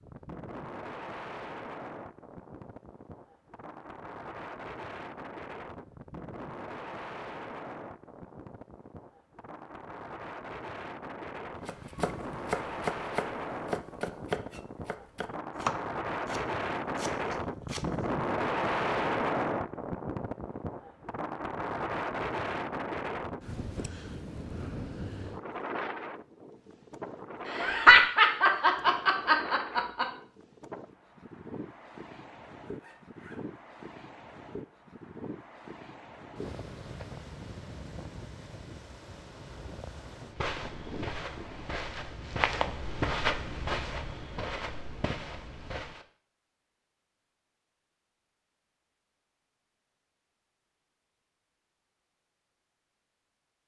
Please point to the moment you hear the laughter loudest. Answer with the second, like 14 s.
28 s.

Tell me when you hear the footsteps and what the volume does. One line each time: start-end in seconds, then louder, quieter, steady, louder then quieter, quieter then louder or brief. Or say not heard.
40.2-46.0 louder then quieter.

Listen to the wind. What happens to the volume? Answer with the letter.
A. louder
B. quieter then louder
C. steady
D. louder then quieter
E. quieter
D.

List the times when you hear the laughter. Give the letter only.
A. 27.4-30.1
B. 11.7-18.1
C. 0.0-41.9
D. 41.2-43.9
A.